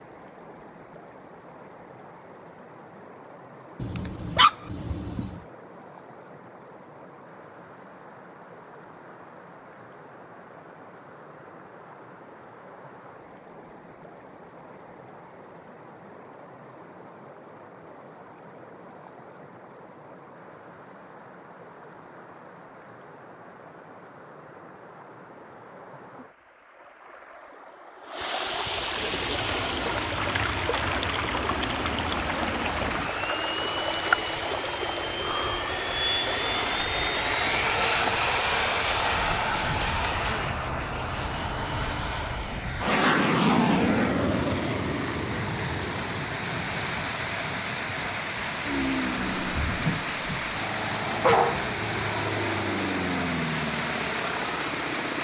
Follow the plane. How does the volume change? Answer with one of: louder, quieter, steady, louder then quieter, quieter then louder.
louder then quieter.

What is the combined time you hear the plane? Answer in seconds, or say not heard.
26 s.